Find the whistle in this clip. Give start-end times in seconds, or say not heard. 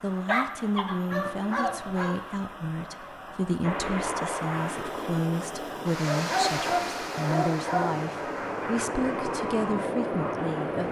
not heard.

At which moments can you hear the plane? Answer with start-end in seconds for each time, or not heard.
3.6-10.8.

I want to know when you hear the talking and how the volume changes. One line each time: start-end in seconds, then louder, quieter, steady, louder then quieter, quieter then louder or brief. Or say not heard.
0.0-10.8 steady.